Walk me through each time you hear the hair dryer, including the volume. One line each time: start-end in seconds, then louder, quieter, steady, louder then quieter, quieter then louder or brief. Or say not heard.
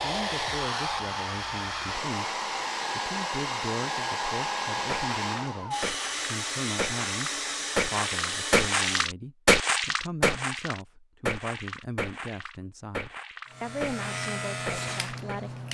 0.0-9.1 steady.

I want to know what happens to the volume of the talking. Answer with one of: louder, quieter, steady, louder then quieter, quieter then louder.
steady.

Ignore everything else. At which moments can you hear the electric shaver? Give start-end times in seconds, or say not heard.
13.4-15.6.